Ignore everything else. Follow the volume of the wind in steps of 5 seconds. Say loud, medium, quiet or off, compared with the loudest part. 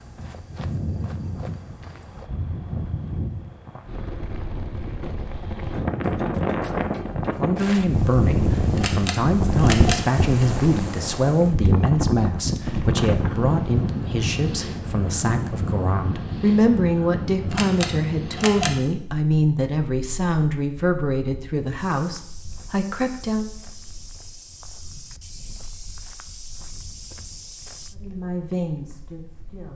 medium, loud, loud, medium, quiet, quiet.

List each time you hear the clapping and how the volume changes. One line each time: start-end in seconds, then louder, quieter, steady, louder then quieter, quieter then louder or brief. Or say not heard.
not heard.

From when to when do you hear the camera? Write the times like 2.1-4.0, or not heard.
8.8-10.6, 17.5-18.8.